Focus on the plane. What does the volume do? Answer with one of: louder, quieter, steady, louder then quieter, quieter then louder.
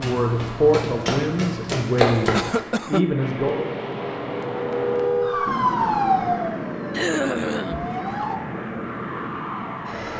louder.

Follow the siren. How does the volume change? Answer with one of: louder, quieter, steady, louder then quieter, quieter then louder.
louder then quieter.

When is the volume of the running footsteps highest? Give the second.
2 s.